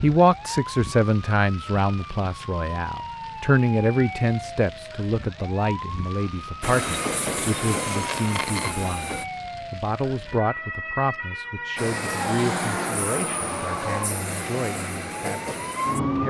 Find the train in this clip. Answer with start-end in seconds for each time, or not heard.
6.6-9.2, 11.8-16.2.